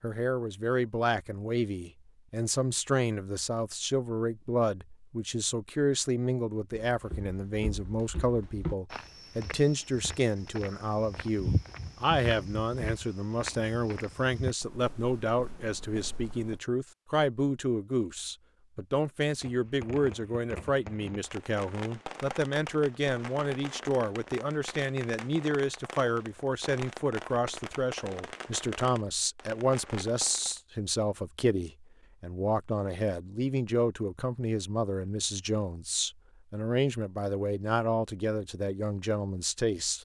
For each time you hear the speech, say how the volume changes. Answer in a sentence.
The speech can be heard from 0.0 to 40.0 s, at a steady volume.